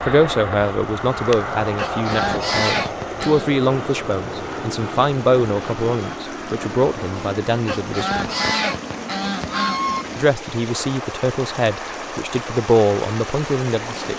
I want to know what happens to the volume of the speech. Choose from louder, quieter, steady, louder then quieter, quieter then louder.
steady.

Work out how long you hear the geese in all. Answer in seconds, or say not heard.
4 s.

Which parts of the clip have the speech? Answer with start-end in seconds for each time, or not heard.
0.0-8.2, 10.2-14.1.